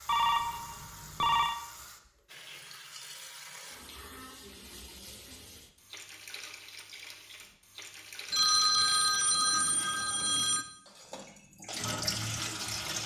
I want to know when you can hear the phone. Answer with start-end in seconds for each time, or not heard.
0.1-1.6, 8.3-10.7.